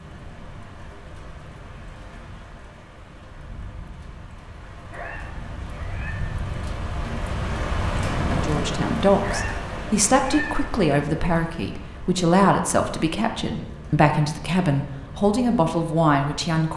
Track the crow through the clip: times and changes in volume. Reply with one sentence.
The crow can't be heard in this clip.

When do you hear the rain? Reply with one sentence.
The rain can be heard from 0.0 to 16.6 s.